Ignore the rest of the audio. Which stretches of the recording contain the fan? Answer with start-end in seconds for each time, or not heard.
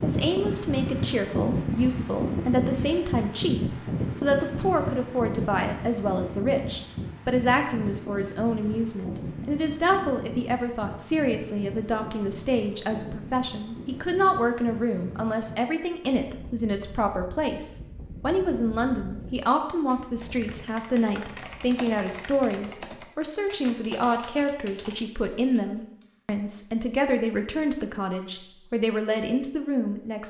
0.0-20.6.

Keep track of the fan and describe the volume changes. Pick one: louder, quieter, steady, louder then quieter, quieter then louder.
quieter.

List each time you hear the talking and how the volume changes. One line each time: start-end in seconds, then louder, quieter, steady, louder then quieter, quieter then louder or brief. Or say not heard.
0.0-30.2 steady.